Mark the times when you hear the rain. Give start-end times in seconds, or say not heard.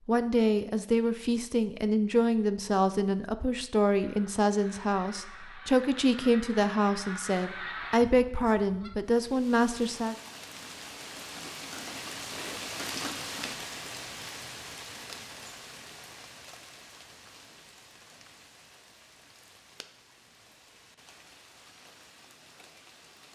9.2-23.3.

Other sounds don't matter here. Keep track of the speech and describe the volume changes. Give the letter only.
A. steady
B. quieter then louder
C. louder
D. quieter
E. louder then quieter
A.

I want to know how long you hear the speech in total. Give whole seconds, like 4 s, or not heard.
10 s.